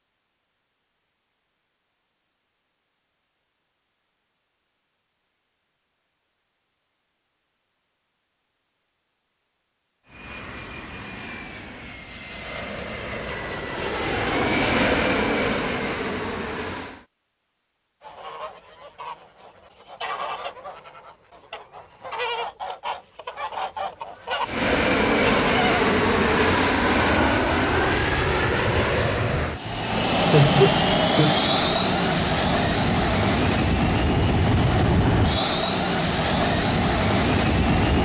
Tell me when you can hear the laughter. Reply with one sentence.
The laughter can be heard from 30.3 to 31.4 s.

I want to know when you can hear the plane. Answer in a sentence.
The plane can be heard from 10.1 to 17.1 s and from 24.4 to 37.9 s.